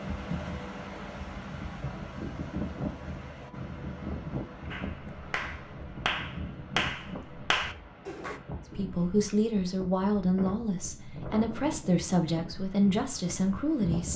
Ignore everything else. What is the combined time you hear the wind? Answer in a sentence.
The wind can be heard for 14 seconds in total.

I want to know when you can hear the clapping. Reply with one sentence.
You can hear the clapping from 4.7 to 8.3 s.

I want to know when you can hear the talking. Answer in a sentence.
The talking can be heard from 8.8 to 14.1 s.